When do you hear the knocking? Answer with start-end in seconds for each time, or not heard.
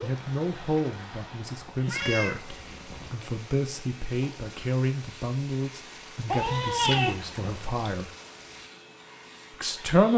not heard.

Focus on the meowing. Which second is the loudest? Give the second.
7 s.